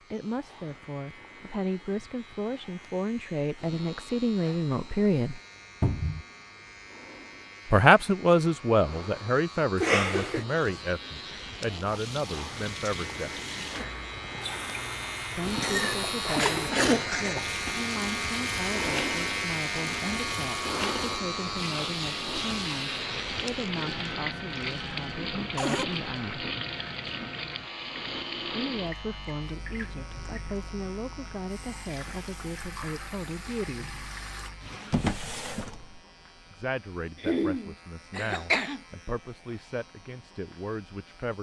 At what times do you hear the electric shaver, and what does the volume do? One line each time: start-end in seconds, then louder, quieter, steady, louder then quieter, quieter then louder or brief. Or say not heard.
0.0-41.3 louder then quieter.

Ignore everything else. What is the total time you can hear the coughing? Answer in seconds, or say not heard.
4 s.